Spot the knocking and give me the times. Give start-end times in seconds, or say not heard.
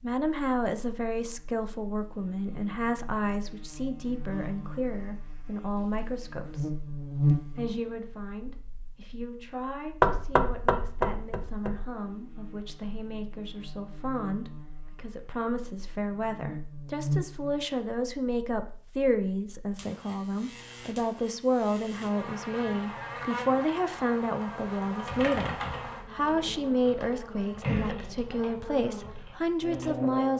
10.0-11.8.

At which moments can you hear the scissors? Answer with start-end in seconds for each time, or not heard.
not heard.